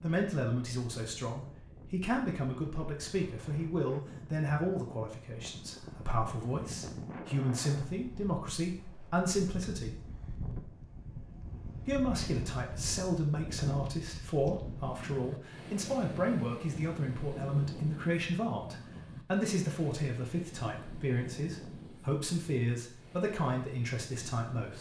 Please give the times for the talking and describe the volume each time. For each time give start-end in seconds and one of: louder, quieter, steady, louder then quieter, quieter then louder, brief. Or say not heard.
0.0-10.0 steady
11.8-24.7 steady.